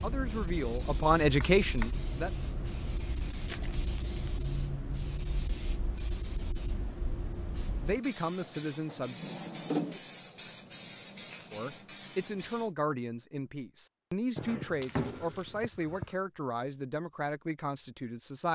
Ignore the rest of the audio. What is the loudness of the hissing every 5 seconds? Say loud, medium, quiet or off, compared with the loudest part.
loud, loud, loud, off.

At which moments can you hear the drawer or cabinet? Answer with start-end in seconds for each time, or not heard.
1.4-1.9, 8.4-10.0, 14.3-16.1.